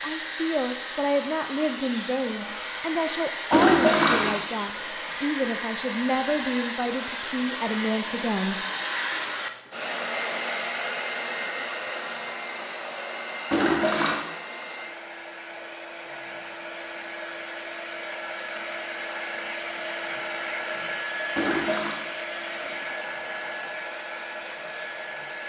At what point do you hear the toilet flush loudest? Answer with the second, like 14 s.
4 s.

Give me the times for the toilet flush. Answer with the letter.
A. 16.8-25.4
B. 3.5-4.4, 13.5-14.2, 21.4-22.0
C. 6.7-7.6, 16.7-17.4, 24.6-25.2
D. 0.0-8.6
B.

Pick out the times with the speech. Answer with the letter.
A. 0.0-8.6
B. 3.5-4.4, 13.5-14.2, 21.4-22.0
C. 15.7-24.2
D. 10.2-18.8
A.